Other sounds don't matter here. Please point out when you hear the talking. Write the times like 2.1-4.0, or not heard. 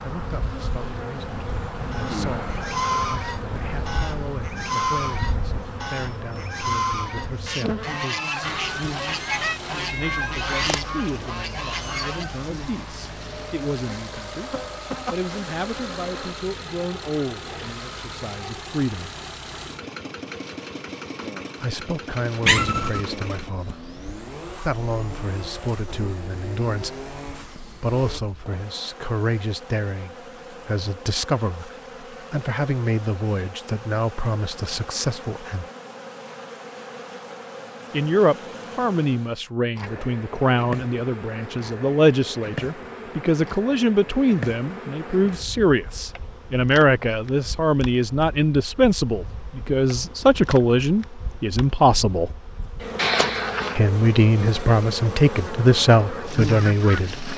0.0-8.5, 9.9-19.1, 21.6-35.6, 37.9-52.3, 53.8-57.3.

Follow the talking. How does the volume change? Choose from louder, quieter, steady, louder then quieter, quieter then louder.
louder.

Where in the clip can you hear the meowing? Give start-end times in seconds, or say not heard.
9.4-10.8, 22.4-23.8, 53.0-53.8.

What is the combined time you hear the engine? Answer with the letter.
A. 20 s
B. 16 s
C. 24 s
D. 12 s
A.